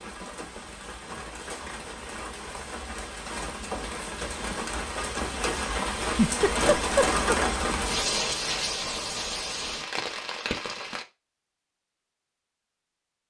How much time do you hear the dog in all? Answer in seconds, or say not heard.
not heard.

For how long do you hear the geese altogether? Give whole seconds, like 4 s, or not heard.
not heard.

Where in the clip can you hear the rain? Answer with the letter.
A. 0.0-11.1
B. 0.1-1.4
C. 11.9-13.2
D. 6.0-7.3
A.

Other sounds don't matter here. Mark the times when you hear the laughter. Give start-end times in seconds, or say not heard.
6.0-7.3.